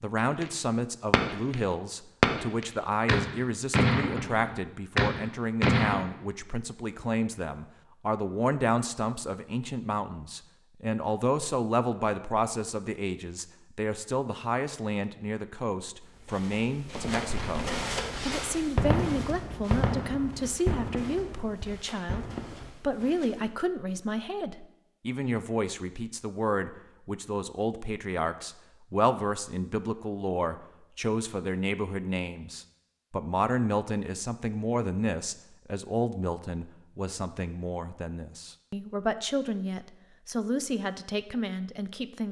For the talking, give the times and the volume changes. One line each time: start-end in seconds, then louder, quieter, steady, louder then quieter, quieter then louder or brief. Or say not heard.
0.0-42.2 steady.